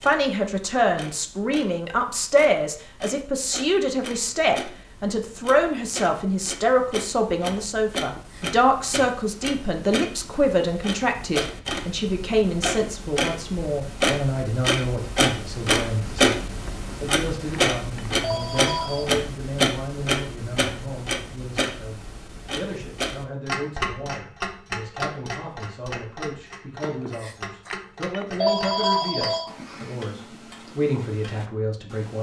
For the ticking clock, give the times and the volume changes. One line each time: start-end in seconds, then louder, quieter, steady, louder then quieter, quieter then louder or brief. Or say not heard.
0.0-32.1 louder then quieter.